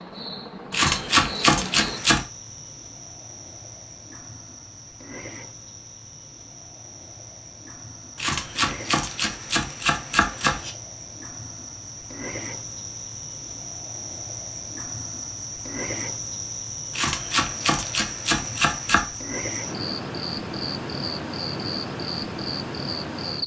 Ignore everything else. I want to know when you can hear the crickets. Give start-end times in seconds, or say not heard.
0.0-23.4.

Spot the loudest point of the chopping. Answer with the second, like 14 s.
1 s.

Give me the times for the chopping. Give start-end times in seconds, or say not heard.
0.7-2.2, 8.2-10.7, 16.9-19.1.